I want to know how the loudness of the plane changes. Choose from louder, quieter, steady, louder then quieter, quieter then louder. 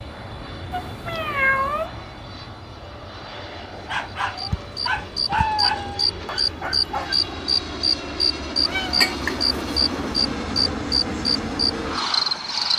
louder.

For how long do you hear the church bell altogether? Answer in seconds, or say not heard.
not heard.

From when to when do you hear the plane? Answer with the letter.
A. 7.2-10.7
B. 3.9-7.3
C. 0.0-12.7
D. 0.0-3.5
C.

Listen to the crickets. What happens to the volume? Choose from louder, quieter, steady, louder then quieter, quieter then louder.
steady.